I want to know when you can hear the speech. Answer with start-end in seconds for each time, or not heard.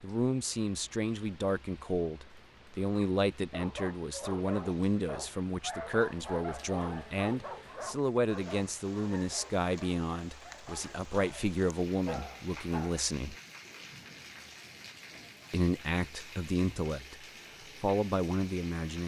0.0-13.3, 15.5-19.0.